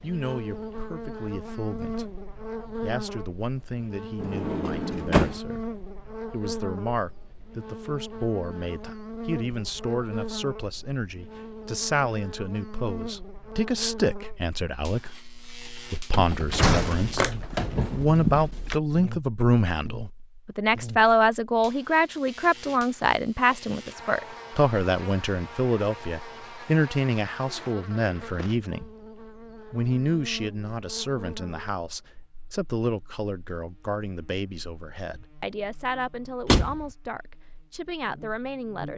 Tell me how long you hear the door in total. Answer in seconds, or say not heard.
4 s.